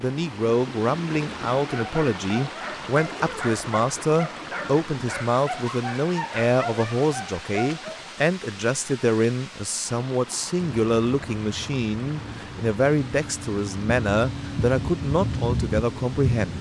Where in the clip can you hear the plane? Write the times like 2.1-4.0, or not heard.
10.6-16.5.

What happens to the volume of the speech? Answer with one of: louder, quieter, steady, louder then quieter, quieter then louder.
steady.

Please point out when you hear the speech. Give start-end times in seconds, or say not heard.
0.0-16.5.